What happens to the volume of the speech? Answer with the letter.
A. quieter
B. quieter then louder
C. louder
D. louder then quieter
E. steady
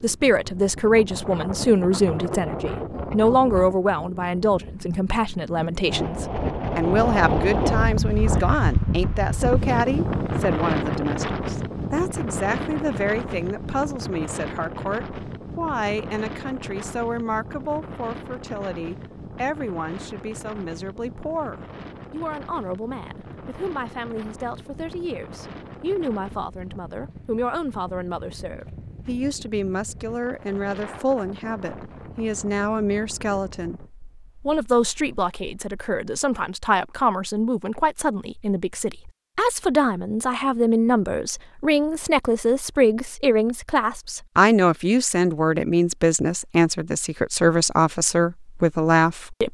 B.